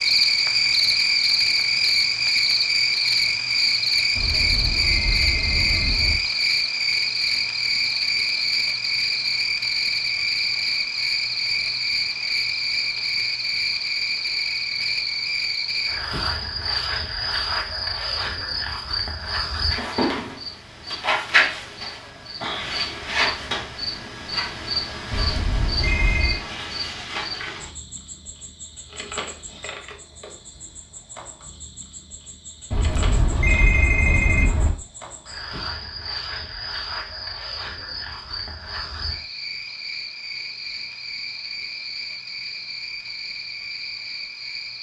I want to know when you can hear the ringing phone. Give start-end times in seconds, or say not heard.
4.2-6.2, 25.1-26.4, 32.7-34.7.